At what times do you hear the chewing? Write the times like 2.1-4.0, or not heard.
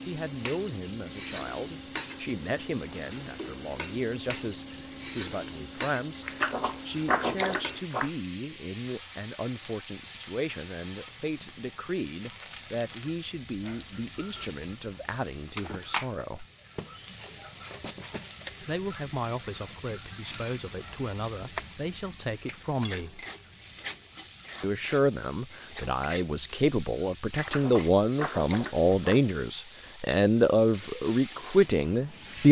6.2-8.1, 27.4-29.2.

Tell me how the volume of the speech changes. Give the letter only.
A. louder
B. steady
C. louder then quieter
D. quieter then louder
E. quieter
A.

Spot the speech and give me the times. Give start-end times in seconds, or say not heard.
0.0-16.4, 18.6-23.2, 24.6-32.4.